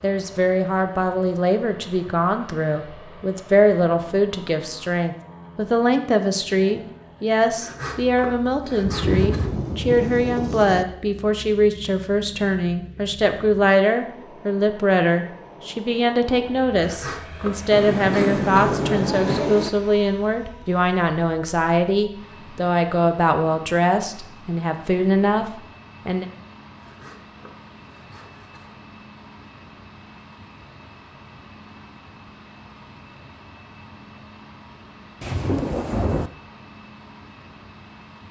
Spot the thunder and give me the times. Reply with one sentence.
The thunder can be heard from 8.8 to 10.8 s, from 17.7 to 19.7 s and from 35.2 to 36.3 s.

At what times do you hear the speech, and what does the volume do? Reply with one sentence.
You can hear the speech from 0.0 to 26.2 s, at a steady volume.